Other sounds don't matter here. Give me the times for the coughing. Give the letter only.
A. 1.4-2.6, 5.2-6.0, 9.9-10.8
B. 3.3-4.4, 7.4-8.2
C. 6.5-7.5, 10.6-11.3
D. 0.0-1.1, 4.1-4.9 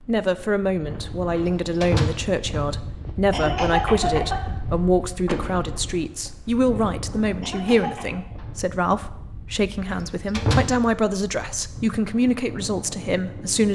B.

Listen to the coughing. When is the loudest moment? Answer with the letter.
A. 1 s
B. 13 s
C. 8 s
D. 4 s
D.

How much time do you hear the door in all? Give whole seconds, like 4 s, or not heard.
3 s.